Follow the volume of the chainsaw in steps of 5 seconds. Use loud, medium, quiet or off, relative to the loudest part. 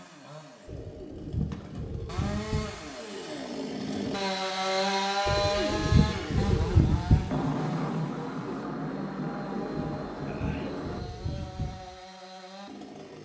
loud, loud, medium.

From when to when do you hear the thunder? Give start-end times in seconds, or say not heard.
7.2-11.0.